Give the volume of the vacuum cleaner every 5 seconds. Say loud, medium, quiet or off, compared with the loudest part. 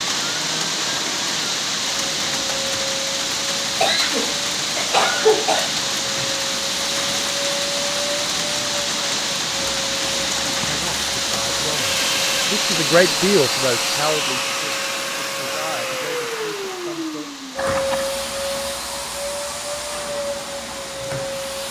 medium, medium, loud, loud, loud.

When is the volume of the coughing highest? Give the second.
5 s.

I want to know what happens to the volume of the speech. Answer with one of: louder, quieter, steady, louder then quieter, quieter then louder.
louder then quieter.